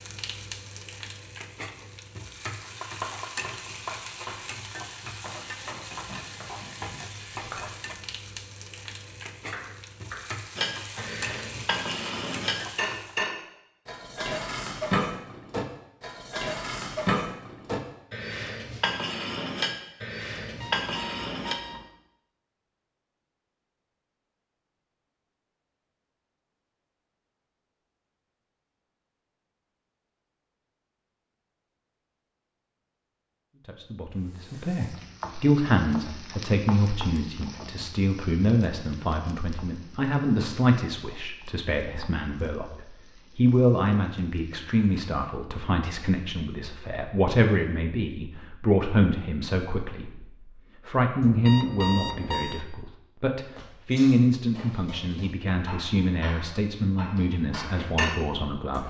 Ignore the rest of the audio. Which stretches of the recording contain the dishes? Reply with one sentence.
The dishes can be heard from 10.6 to 21.6 s and from 53.5 to 58.8 s.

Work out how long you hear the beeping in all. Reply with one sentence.
The beeping can be heard for 3 seconds in total.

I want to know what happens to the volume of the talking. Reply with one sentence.
The volume of the talking stays about the same.